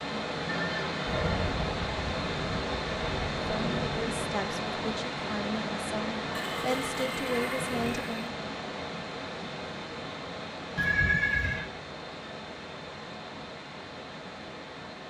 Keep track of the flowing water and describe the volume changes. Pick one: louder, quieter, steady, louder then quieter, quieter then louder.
quieter.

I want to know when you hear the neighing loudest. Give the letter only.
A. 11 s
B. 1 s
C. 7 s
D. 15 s
A.